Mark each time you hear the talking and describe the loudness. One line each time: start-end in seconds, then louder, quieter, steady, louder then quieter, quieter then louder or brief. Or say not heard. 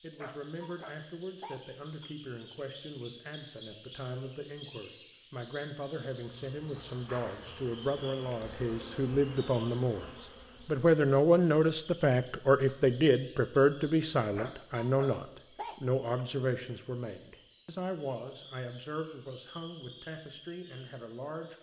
0.0-21.5 louder then quieter.